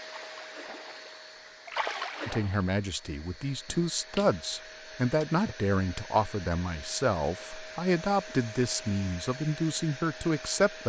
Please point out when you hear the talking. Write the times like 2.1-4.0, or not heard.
2.2-10.8.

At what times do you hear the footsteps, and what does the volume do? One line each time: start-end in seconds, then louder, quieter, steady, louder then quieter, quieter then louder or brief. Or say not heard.
not heard.